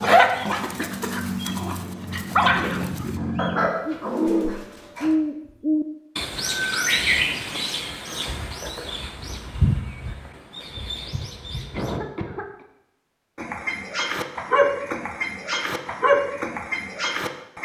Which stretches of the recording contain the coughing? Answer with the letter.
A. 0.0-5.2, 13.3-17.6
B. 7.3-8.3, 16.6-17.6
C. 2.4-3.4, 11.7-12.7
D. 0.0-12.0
C.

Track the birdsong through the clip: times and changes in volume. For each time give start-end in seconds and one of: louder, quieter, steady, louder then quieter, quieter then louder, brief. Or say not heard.
0.0-12.0 louder then quieter.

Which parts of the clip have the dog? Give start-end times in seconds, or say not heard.
0.0-5.2, 13.3-17.6.